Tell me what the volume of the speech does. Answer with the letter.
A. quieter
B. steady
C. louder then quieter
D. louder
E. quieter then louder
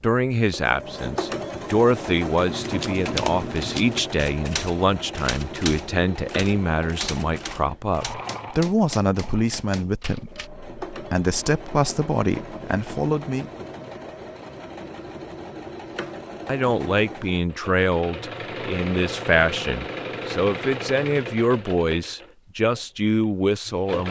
B.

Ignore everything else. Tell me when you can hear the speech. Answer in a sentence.
You can hear the speech from 0.0 to 13.5 s and from 16.4 to 24.0 s.